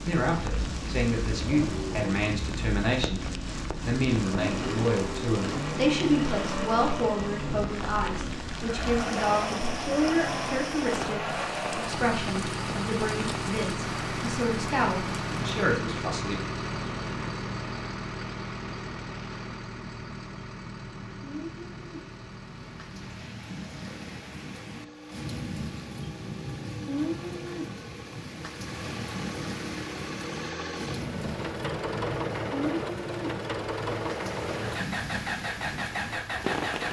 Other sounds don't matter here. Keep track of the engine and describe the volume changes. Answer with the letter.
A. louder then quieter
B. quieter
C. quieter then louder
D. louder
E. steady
C.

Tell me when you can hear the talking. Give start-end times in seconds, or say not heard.
0.0-3.2, 3.9-16.4.